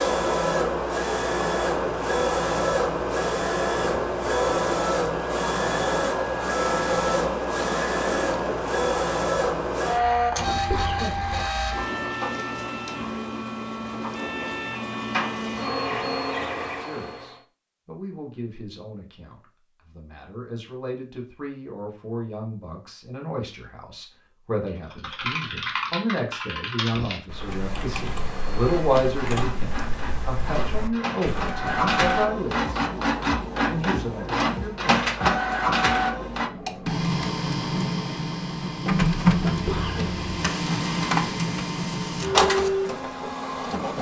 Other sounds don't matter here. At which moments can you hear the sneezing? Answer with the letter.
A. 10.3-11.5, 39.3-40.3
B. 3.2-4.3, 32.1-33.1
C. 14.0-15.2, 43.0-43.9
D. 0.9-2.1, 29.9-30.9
A.